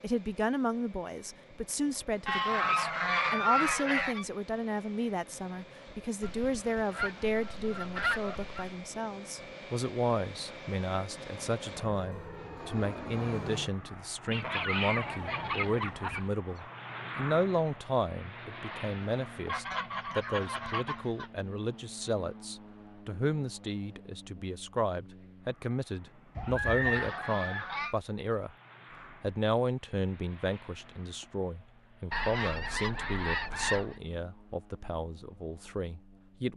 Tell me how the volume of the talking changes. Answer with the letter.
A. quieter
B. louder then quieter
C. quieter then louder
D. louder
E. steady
E.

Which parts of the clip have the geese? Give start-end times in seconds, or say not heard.
2.2-4.2, 6.2-8.8, 14.3-16.3, 19.4-21.3, 26.4-27.9, 32.1-34.0.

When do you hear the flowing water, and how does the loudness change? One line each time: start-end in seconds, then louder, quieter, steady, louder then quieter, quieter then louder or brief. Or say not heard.
not heard.